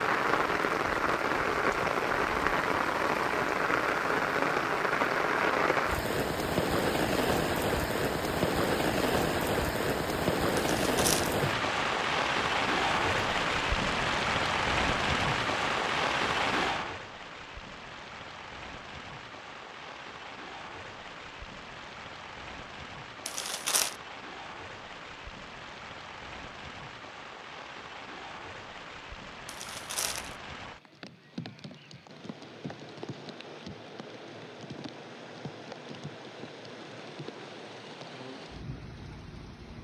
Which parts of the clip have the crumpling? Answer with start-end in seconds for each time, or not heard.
10.6-11.3, 23.2-23.9, 29.4-30.4.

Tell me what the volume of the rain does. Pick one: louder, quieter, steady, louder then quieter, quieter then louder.
quieter.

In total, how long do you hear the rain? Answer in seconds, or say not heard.
40 s.